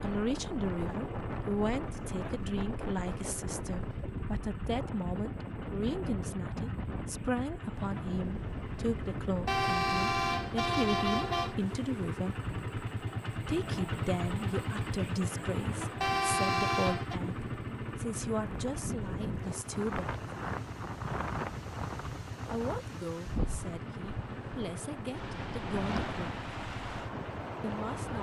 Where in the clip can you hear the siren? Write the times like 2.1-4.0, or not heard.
not heard.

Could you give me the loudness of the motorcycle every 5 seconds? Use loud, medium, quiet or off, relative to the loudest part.
medium, medium, loud, loud, medium, medium.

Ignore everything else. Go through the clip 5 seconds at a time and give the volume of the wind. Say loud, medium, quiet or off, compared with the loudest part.
loud, loud, medium, loud, loud, loud.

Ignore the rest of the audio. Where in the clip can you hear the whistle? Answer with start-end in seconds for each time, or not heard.
not heard.